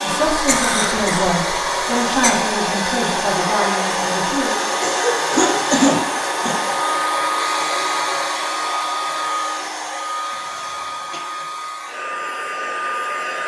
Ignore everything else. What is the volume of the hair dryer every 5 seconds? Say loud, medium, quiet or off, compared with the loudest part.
loud, loud, medium.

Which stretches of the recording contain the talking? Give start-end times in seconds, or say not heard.
0.0-4.7.